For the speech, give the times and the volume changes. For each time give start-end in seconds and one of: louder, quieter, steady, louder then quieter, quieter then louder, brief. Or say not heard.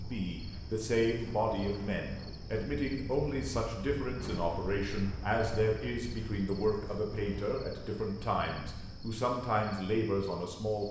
0.0-10.8 steady.